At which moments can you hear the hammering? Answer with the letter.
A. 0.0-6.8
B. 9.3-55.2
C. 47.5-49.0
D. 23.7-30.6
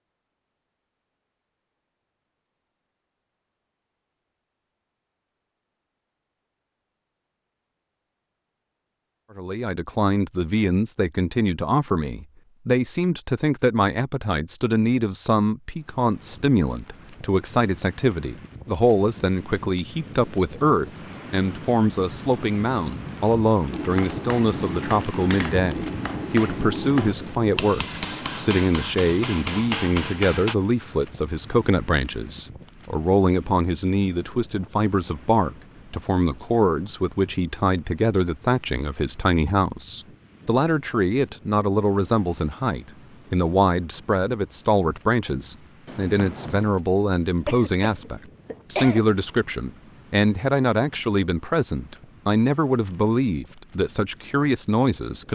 D.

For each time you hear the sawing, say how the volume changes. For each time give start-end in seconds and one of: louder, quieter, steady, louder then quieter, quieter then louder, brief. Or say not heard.
not heard.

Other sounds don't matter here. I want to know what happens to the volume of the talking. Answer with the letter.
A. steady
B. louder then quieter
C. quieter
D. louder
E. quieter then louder
A.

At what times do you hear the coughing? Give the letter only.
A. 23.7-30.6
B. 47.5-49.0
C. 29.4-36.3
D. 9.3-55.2
B.